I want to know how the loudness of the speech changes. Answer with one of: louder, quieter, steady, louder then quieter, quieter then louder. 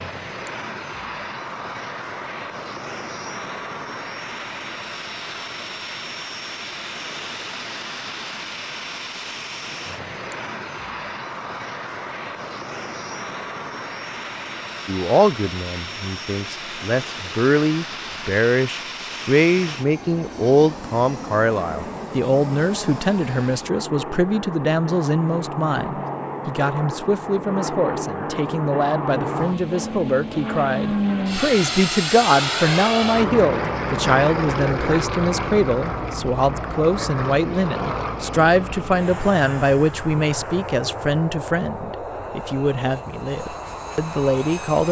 steady.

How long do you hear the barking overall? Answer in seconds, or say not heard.
not heard.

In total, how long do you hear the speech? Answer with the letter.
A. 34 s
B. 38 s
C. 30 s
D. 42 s
C.